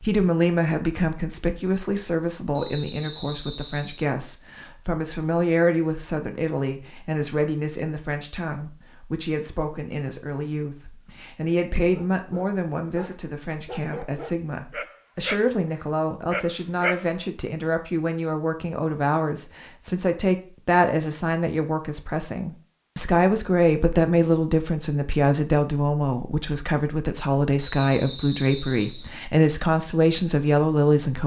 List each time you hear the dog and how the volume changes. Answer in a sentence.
You can hear the dog from 11.9 to 17.1 s, getting louder.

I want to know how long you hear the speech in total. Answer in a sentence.
You can hear the speech for 31 seconds altogether.